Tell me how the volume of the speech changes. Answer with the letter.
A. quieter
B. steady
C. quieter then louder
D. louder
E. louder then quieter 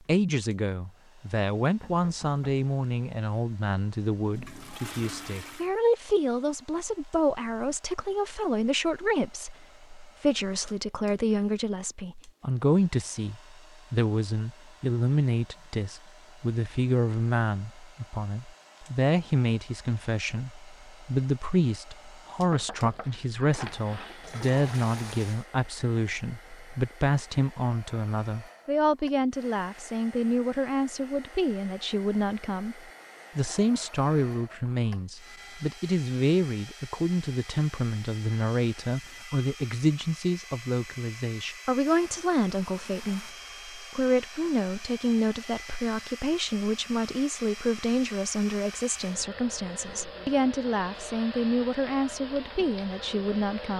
B.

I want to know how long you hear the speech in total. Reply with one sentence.
The speech can be heard for 54 seconds in total.